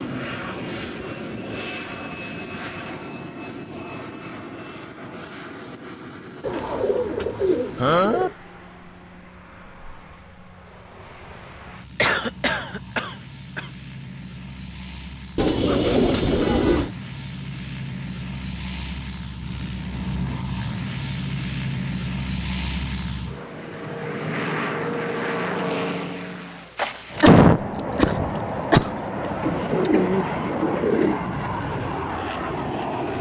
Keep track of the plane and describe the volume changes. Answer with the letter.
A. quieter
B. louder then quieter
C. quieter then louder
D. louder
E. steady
C.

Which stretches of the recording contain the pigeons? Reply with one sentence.
You can hear the pigeons from 6.4 to 8.3 s, from 15.3 to 16.9 s and from 29.4 to 31.2 s.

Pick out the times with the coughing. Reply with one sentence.
The coughing can be heard from 7.8 to 8.3 s, from 11.9 to 13.7 s and from 27.2 to 29.0 s.